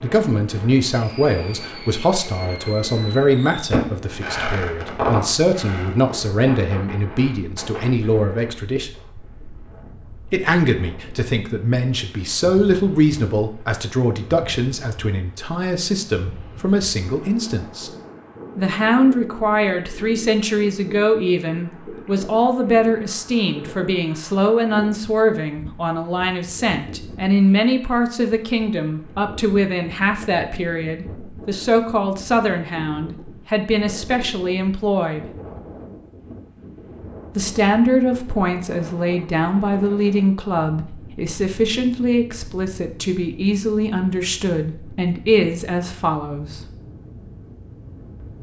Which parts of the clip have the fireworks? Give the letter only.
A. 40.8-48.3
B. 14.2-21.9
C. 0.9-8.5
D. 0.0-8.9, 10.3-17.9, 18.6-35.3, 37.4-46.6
C.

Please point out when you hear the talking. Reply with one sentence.
The talking can be heard from 0.0 to 8.9 s, from 10.3 to 17.9 s, from 18.6 to 35.3 s and from 37.4 to 46.6 s.